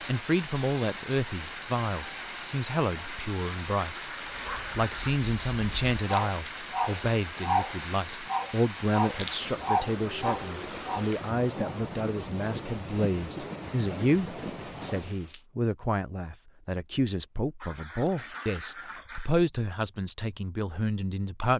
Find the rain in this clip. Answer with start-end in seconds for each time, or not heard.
0.0-15.4.